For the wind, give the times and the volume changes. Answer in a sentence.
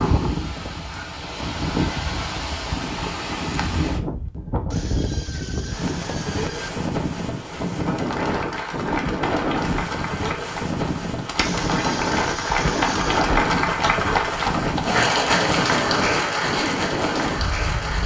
The wind can be heard from 0.0 to 18.0 s, at a steady volume.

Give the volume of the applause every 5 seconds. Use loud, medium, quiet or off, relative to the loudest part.
off, medium, loud, loud.